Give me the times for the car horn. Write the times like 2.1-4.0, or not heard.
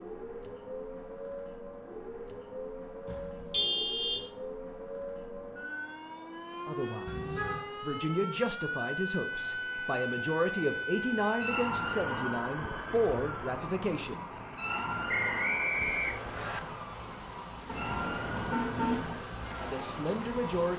3.0-4.3, 7.0-7.7, 17.6-19.1.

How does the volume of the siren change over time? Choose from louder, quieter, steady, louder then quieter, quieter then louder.
louder then quieter.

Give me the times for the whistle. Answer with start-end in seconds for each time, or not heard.
15.1-16.6.